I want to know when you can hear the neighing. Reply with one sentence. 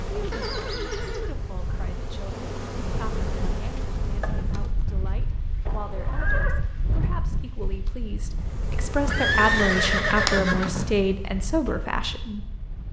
The neighing can be heard from 0.3 to 1.3 s, from 5.7 to 6.6 s and from 9.1 to 10.9 s.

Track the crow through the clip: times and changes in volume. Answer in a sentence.
You can't hear the crow here.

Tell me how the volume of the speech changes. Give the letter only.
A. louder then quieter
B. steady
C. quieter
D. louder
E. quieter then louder
D.